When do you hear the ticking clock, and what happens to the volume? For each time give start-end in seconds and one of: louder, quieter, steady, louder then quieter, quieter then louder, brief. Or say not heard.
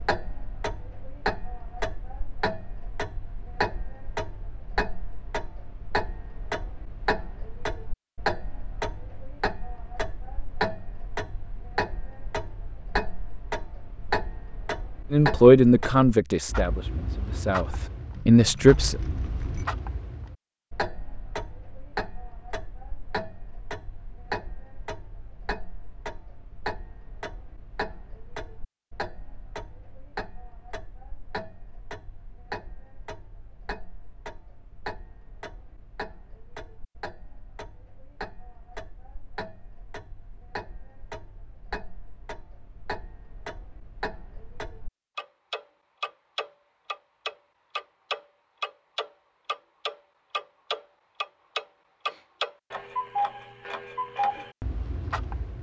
0.0-55.5 quieter then louder.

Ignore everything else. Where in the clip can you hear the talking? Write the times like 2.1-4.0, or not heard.
15.1-18.9.